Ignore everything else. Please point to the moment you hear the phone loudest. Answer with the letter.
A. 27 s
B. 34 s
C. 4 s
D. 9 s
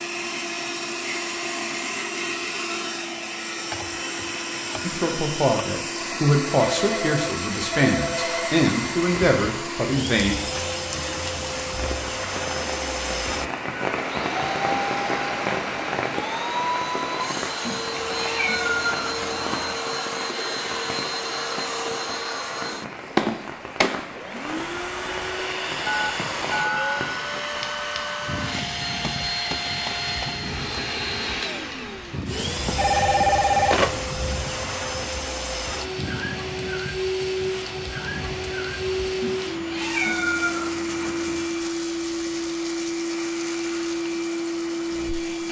B.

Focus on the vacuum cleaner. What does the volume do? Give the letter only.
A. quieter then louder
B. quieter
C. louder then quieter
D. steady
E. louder
D.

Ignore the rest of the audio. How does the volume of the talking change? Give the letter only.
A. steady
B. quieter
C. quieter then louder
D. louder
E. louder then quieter
A.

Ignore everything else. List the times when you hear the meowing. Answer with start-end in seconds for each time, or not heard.
17.6-19.8, 39.2-41.5.